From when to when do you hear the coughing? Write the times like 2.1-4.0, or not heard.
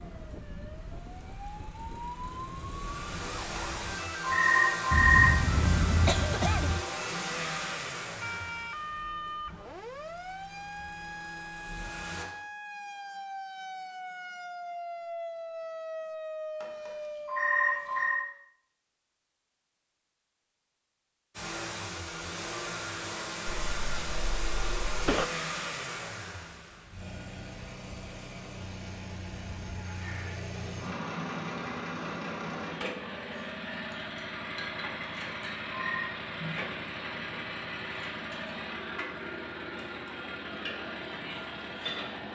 4.9-6.8, 23.4-25.2.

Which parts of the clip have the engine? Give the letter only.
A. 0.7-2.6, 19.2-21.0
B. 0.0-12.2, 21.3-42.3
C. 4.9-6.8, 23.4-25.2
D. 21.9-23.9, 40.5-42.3
B.